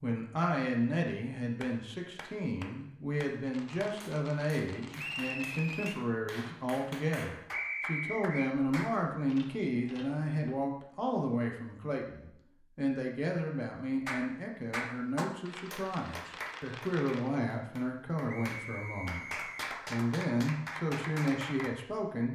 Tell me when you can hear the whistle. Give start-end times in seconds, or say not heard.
5.0-6.0, 7.5-8.6, 18.2-19.4.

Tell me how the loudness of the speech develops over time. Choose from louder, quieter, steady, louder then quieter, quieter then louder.
steady.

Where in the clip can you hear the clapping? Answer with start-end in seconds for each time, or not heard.
1.6-9.0, 14.1-21.7.